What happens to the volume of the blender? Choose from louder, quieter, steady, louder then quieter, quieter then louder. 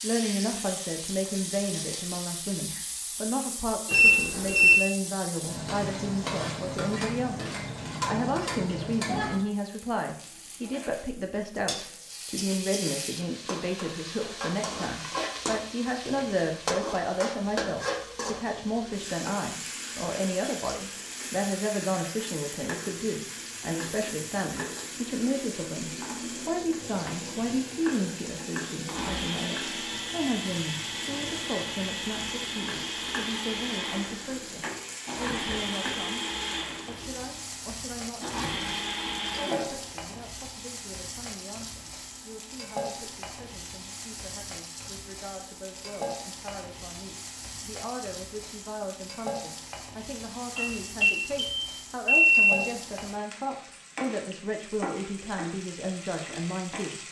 steady.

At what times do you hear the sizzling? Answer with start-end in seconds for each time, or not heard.
0.0-57.0.